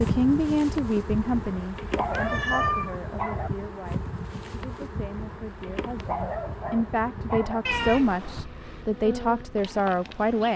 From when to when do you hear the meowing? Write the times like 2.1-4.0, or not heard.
2.0-3.0, 7.7-8.4.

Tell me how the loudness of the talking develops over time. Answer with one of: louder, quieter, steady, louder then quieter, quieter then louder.
quieter then louder.